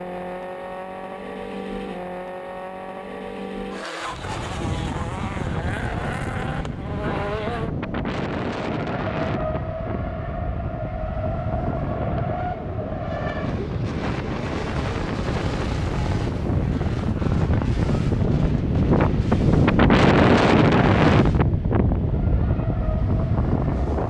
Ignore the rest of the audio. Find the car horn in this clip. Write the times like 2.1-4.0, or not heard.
not heard.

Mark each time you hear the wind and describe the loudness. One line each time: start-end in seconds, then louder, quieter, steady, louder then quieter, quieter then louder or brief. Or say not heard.
4.0-24.0 louder.